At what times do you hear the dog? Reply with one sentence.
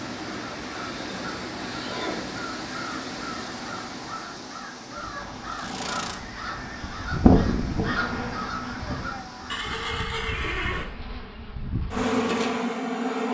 The dog can't be heard in this clip.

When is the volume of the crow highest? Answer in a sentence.
The volume of the crow peaks at 8 seconds.